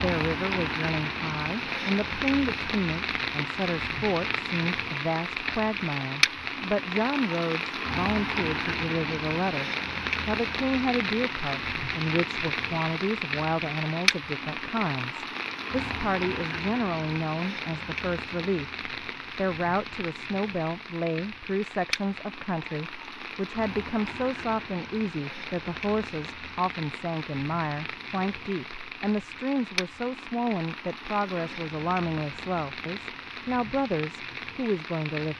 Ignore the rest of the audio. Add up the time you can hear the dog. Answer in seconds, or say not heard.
not heard.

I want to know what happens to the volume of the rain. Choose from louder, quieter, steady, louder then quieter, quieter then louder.
quieter.